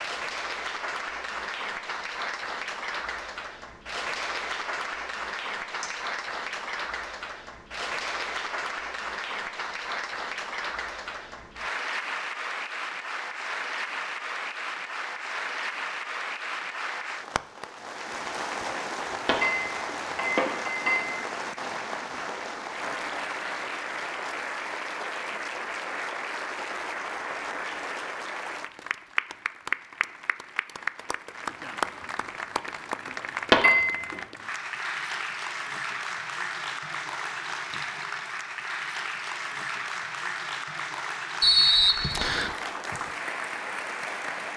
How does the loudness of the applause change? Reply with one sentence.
The volume of the applause stays about the same.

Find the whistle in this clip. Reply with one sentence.
You can hear the whistle from 41.4 to 42.5 s.